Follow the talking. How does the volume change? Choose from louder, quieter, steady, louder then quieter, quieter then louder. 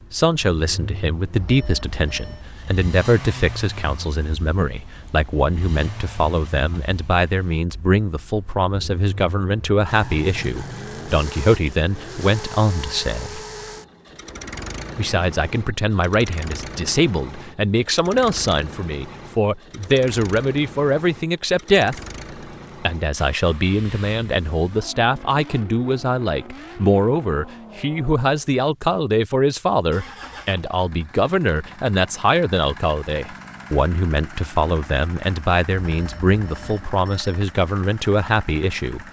steady.